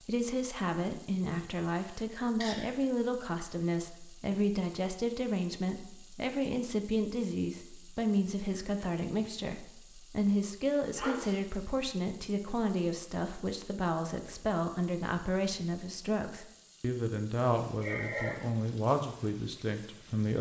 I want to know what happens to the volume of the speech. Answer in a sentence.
The volume of the speech stays about the same.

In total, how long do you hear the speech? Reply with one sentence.
The speech can be heard for 20 seconds in total.